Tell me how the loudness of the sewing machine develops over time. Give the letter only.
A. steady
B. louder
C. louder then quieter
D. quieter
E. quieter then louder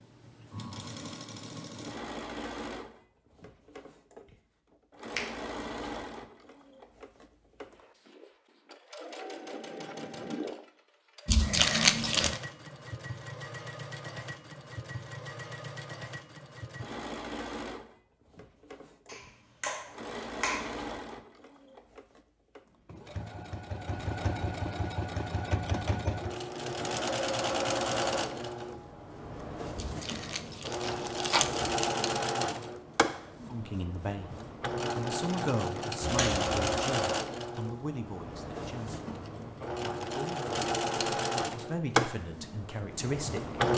B.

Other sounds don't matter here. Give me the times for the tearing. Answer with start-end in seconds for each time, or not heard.
11.2-12.4, 29.8-32.0.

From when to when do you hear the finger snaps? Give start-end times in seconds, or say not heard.
19.1-20.8, 36.0-36.8.